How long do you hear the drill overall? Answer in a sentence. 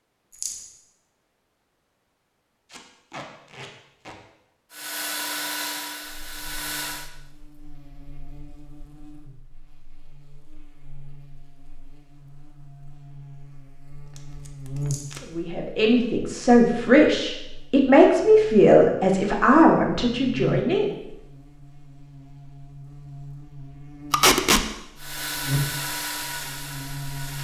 The drill can be heard for 5 seconds in total.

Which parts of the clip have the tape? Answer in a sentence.
You can hear the tape from 2.7 to 4.2 s, from 13.9 to 15.2 s and from 24.1 to 24.6 s.